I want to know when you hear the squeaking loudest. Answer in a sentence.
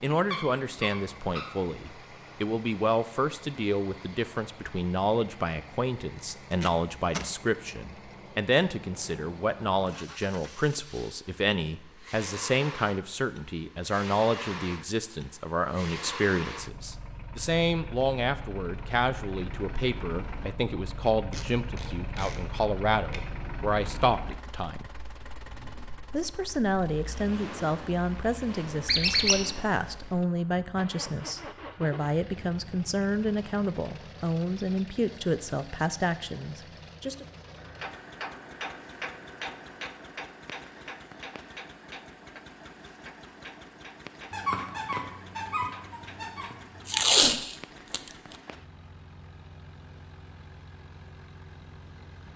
The loudest moment of the squeaking is at 29 seconds.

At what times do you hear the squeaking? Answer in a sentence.
You can hear the squeaking from 0.1 to 1.5 s, from 28.9 to 29.4 s and from 44.3 to 47.0 s.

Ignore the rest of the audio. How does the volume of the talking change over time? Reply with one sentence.
The loudness of the talking stays about the same.